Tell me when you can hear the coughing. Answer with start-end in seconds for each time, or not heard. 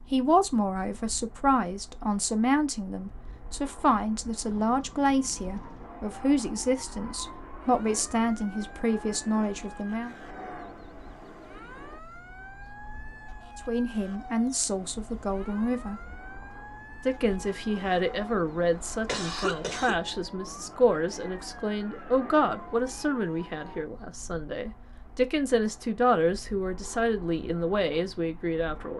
19.1-20.0.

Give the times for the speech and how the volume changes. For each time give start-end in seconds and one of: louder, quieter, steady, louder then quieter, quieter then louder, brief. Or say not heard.
0.0-10.2 steady
13.6-16.1 brief
17.1-28.9 steady.